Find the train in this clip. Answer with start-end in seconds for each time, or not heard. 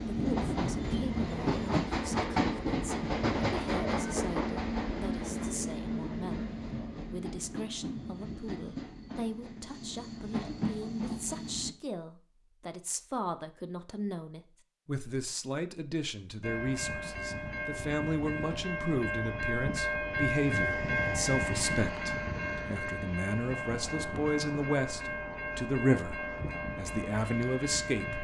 0.0-11.8, 16.4-28.2.